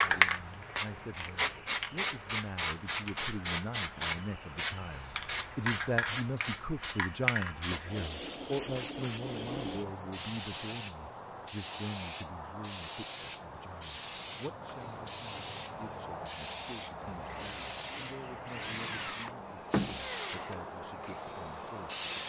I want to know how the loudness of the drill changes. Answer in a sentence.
The loudness of the drill goes up, then down.